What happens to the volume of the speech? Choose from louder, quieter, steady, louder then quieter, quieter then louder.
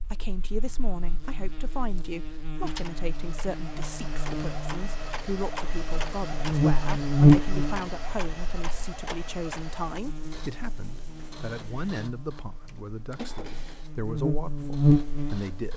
steady.